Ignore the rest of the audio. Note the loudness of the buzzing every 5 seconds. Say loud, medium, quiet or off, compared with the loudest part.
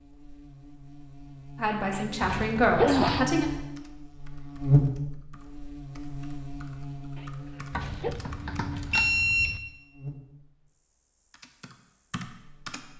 loud, medium, quiet.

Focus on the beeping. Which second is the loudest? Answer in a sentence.
The loudest moment of the beeping is at 9 seconds.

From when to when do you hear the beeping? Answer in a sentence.
The beeping can be heard from 2.4 to 3.3 s and from 7.7 to 9.6 s.